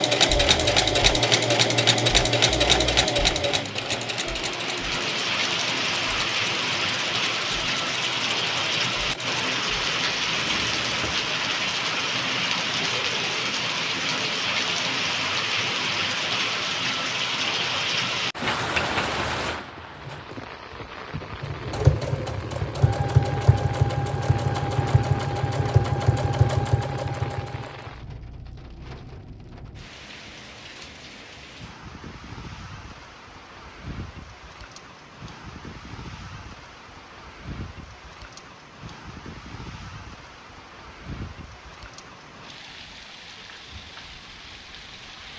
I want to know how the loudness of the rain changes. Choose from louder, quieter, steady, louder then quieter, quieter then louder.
quieter.